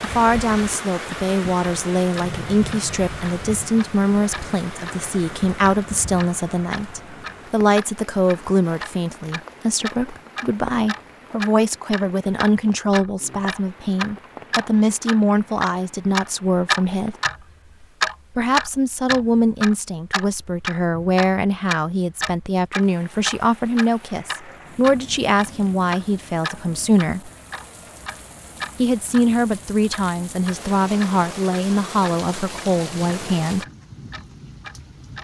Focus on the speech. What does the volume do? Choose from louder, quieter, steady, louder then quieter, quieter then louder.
steady.